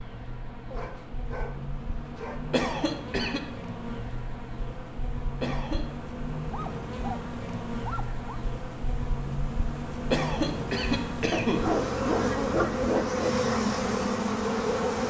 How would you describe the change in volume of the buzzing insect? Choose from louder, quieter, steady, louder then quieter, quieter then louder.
louder.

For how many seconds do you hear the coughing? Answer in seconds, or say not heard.
3 s.